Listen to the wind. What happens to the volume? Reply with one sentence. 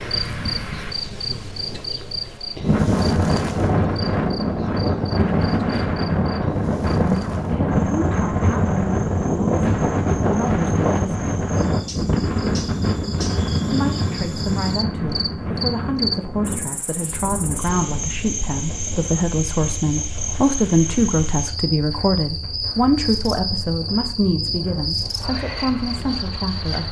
The volume of the wind goes down.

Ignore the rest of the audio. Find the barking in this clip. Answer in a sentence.
The barking can't be heard in this clip.